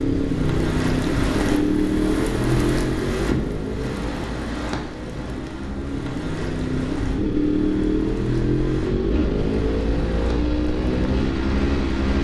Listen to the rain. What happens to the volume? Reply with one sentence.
The volume of the rain goes down.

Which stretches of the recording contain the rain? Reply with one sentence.
The rain can be heard from 0.0 to 12.1 s.